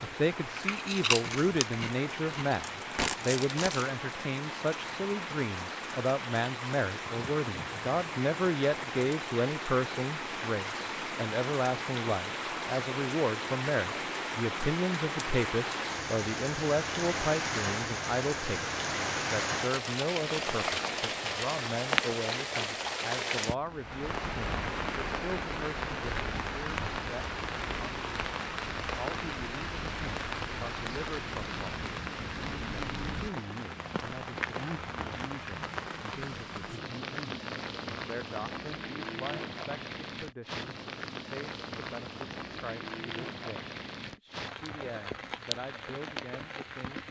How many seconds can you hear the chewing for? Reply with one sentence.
The chewing can be heard for 4 seconds in total.